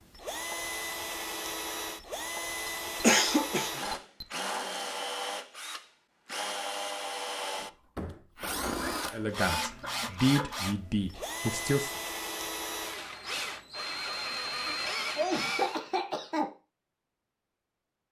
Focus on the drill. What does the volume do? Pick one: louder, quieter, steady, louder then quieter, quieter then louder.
steady.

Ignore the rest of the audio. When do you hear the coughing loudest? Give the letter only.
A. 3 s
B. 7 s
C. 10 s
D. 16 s
A.